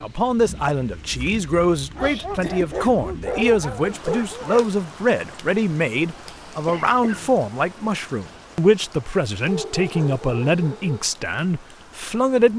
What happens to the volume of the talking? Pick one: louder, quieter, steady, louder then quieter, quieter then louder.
steady.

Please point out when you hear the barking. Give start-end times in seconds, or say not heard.
1.9-4.7, 9.4-11.1.